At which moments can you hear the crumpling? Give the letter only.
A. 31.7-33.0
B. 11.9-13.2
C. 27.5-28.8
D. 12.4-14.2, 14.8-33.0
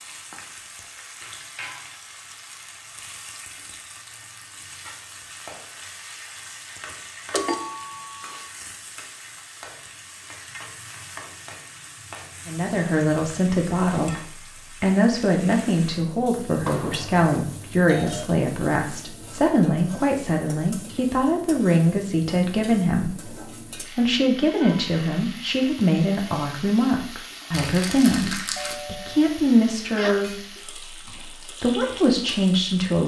C.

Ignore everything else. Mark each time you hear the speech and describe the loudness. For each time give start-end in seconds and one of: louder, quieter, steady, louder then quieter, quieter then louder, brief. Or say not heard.
12.4-14.2 brief
14.8-33.0 steady.